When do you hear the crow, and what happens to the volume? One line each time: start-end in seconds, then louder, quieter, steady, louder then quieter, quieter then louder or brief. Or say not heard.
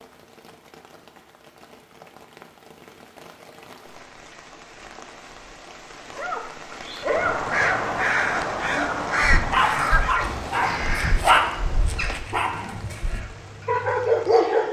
6.8-14.2 quieter.